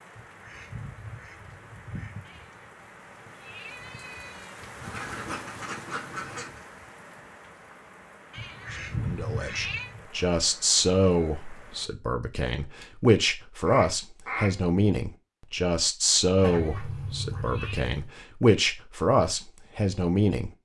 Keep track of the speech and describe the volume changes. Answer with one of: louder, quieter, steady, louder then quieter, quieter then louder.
steady.